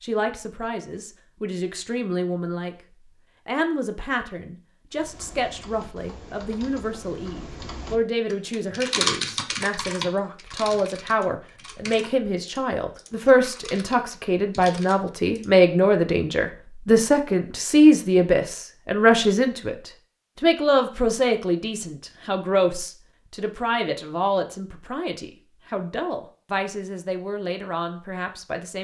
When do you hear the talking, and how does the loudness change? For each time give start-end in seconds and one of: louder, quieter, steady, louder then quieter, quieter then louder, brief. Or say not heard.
0.0-2.8 brief
3.5-28.7 louder then quieter.